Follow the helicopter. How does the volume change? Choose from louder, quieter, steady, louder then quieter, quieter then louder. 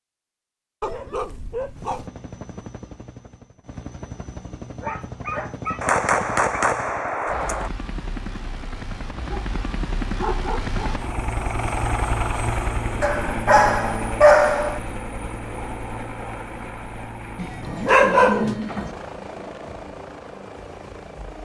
louder then quieter.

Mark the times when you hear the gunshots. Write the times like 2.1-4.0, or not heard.
5.8-7.7.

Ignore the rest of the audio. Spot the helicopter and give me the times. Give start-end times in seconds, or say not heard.
1.8-21.3.